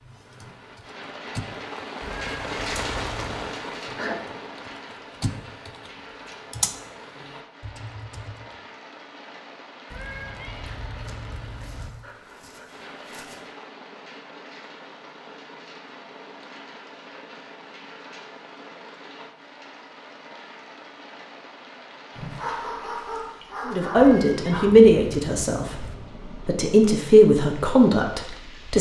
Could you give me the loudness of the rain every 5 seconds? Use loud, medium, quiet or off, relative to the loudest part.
loud, medium, medium, medium, medium, medium.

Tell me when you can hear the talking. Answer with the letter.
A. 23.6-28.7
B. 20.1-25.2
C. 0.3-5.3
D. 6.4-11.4
A.